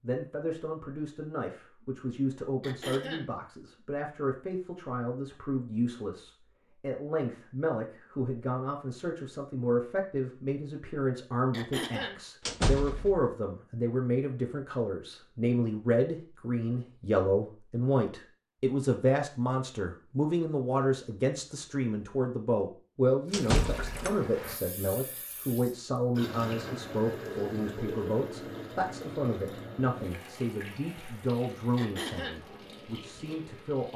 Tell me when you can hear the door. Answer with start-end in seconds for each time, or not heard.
12.4-13.2, 23.3-24.1.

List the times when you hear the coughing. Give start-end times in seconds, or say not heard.
2.6-3.3, 11.5-12.2, 31.8-32.4.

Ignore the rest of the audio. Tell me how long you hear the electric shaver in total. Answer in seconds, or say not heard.
not heard.